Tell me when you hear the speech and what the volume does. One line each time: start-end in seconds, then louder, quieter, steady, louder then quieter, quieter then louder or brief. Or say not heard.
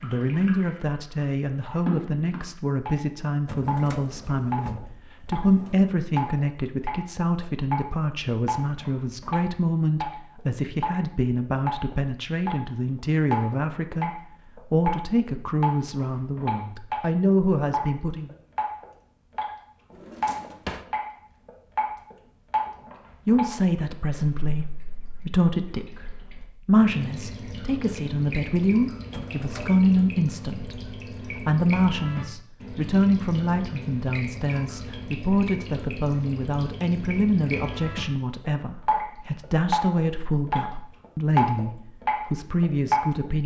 0.0-18.4 steady
23.2-43.4 steady.